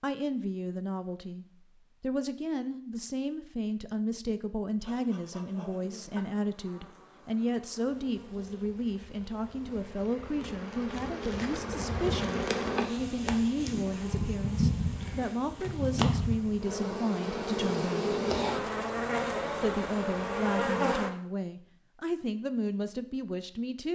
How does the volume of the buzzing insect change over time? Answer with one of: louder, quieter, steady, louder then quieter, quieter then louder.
louder.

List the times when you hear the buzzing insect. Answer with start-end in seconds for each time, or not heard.
4.8-21.1.